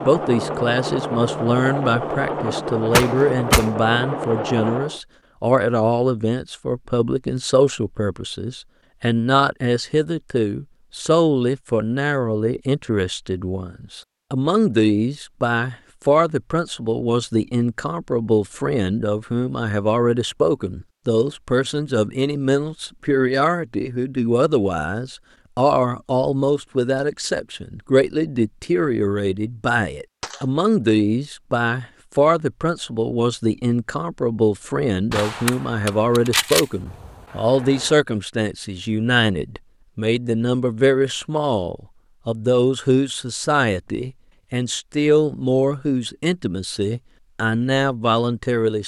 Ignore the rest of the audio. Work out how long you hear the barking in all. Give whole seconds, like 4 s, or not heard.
not heard.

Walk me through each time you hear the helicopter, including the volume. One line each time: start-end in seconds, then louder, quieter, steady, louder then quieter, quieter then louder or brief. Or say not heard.
0.0-5.0 steady.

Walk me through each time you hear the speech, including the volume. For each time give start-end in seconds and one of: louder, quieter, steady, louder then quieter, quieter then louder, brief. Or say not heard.
0.0-48.8 steady.